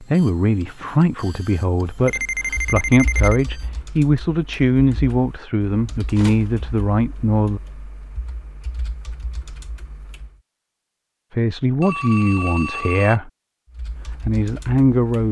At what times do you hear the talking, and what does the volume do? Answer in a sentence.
The talking can be heard from 0.0 to 7.6 s, at a steady volume; briefly from 11.3 to 13.3 s; and briefly from 14.2 to 15.2 s.